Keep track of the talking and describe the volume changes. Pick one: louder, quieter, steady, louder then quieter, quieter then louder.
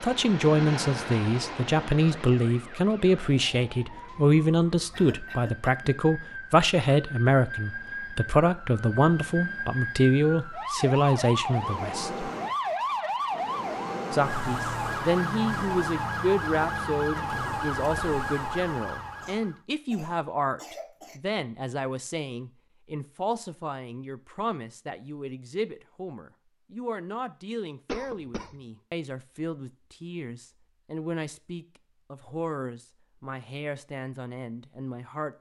quieter.